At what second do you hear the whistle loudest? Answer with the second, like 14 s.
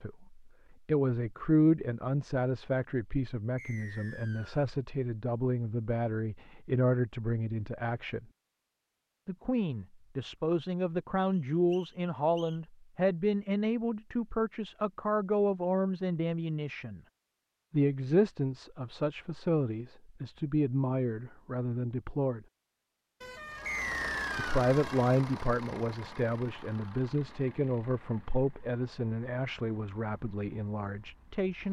24 s.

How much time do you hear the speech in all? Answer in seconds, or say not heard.
28 s.